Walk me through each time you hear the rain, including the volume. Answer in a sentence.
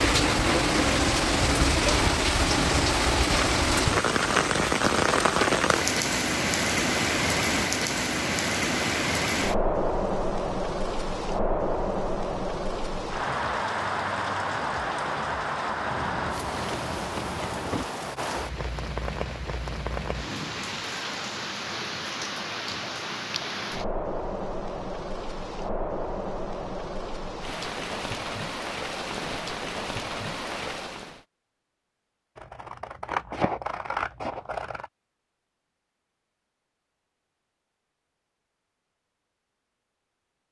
You can hear the rain from 0.0 to 31.2 s, getting quieter.